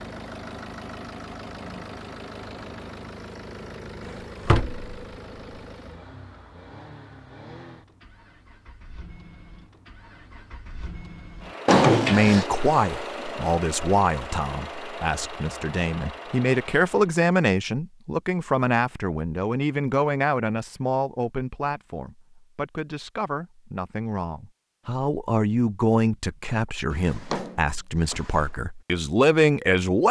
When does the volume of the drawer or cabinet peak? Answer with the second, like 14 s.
12 s.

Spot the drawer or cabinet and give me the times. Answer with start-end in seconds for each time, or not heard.
4.1-4.8, 11.7-12.4, 26.9-28.5.